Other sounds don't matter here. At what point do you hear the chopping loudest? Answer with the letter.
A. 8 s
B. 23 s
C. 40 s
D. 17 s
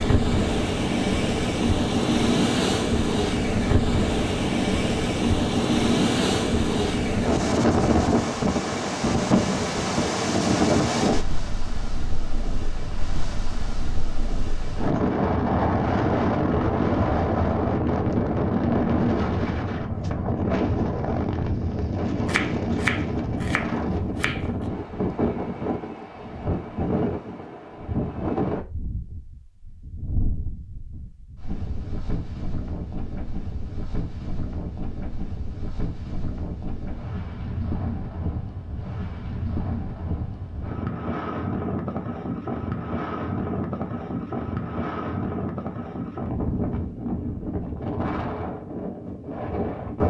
B.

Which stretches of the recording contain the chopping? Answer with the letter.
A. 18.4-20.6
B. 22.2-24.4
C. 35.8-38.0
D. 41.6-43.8
B.